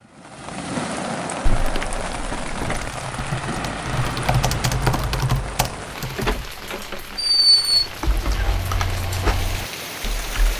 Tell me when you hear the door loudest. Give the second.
7 s.